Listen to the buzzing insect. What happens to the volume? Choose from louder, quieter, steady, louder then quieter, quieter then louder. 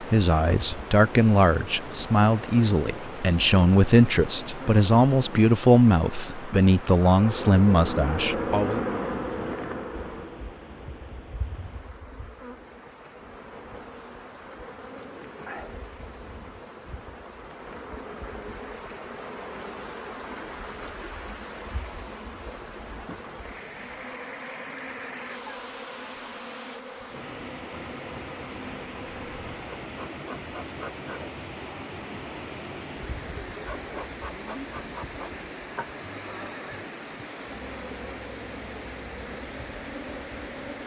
quieter.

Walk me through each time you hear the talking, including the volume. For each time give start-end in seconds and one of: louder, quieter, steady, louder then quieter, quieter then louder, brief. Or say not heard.
0.0-8.8 steady.